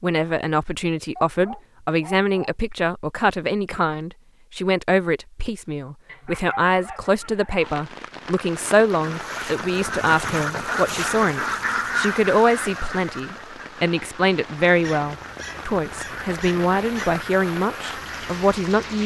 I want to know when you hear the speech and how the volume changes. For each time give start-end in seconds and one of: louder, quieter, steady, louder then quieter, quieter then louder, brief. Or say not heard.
0.0-19.0 steady.